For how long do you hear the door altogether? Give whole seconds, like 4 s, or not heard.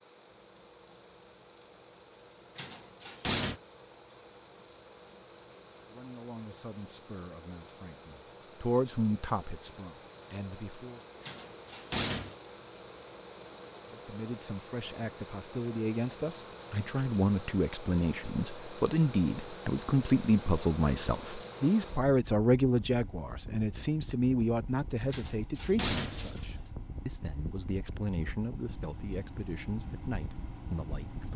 4 s.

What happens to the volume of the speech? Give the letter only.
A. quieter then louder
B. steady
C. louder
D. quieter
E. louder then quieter
E.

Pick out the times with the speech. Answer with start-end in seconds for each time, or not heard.
5.9-11.0, 13.9-31.3.